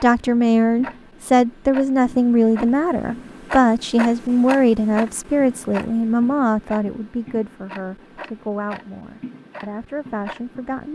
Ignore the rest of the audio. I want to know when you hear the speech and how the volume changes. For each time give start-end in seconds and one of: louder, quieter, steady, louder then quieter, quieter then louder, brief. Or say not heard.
0.0-10.9 quieter.